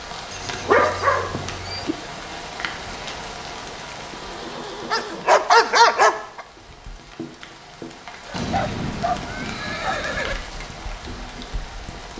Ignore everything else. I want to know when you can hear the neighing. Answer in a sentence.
The neighing can be heard from 0.3 to 1.9 s, from 4.2 to 5.2 s and from 8.3 to 10.3 s.